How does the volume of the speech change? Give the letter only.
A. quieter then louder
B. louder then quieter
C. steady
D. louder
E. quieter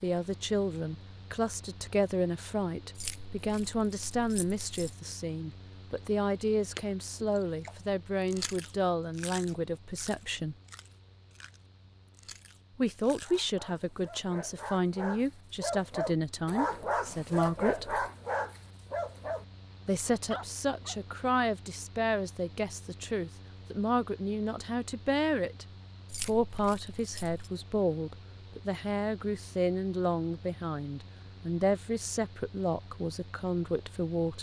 C.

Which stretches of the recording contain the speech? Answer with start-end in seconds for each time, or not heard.
0.0-10.6, 12.8-18.1, 19.9-25.6, 26.2-34.3.